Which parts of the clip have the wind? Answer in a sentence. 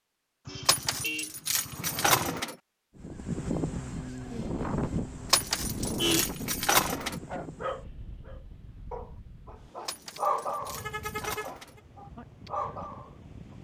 You can hear the wind from 3.0 to 13.5 s.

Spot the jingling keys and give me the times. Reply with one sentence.
You can hear the jingling keys from 0.7 to 2.5 s, from 5.3 to 7.2 s and from 9.8 to 11.8 s.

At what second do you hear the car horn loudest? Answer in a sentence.
The volume of the car horn peaks at 6 seconds.